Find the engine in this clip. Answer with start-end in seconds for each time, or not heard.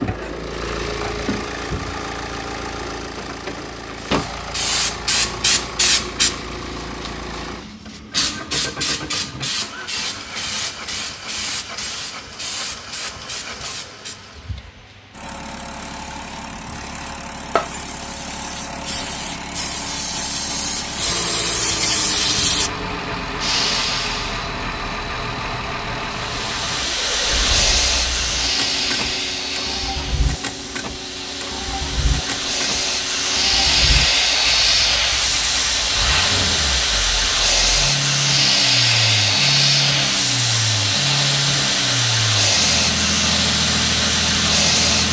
0.0-45.0.